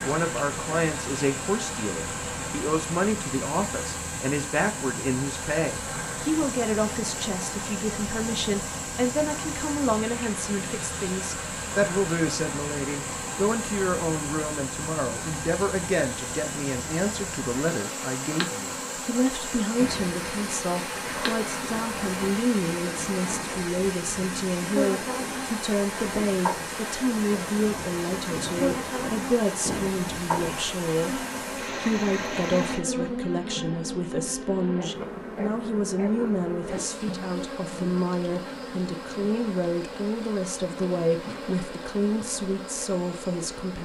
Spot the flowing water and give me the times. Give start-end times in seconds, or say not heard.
0.0-32.8.